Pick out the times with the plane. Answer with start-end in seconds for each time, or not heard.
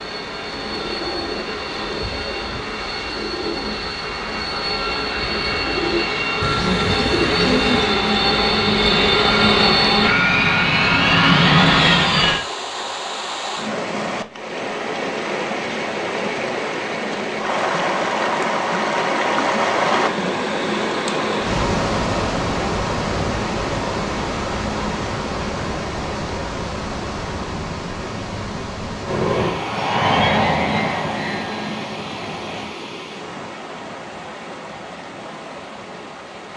0.0-12.4, 29.0-32.7.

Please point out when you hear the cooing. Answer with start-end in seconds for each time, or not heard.
0.6-8.0.